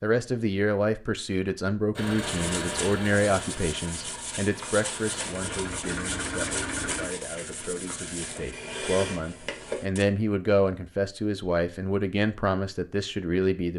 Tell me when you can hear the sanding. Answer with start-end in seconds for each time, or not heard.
2.2-10.1.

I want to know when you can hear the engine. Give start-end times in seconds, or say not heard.
1.9-7.1.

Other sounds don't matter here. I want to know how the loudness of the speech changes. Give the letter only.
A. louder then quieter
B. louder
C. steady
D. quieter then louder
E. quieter
D.